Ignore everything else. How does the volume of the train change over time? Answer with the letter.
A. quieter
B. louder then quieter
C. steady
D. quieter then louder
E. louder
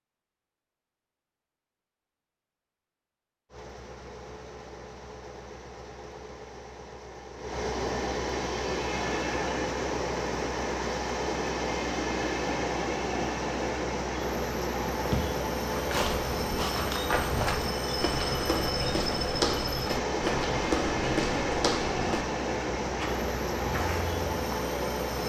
E.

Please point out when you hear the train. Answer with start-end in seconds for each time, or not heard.
3.5-25.2.